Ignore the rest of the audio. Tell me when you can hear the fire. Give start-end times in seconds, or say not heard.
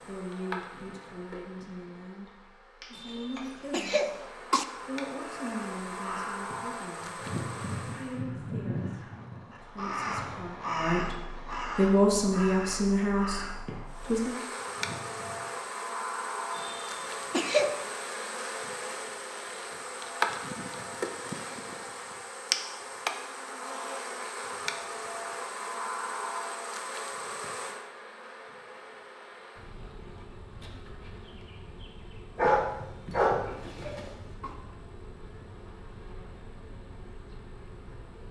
not heard.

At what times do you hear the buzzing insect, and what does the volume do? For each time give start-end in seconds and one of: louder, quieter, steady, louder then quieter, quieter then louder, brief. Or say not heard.
0.0-8.2 quieter then louder
13.8-38.2 quieter.